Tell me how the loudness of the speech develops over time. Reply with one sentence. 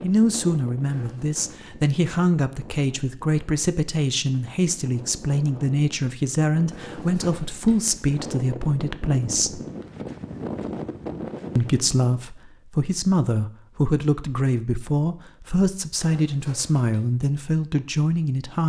The volume of the speech stays about the same.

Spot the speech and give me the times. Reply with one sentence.
The speech can be heard from 0.0 to 9.6 s and from 11.6 to 18.6 s.